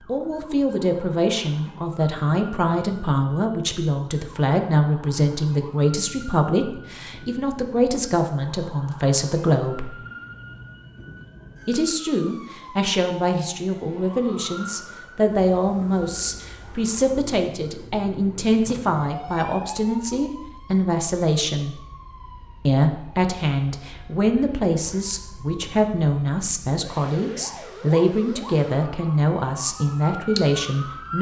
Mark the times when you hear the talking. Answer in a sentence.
The talking can be heard from 0.1 to 9.9 s, from 11.7 to 21.8 s and from 22.6 to 31.1 s.